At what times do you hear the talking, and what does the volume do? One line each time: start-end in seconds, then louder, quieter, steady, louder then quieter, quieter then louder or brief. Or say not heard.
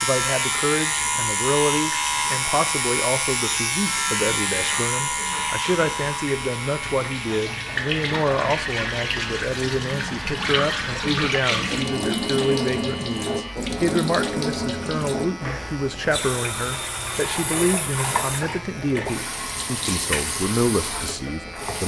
0.0-21.8 steady.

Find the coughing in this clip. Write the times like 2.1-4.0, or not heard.
not heard.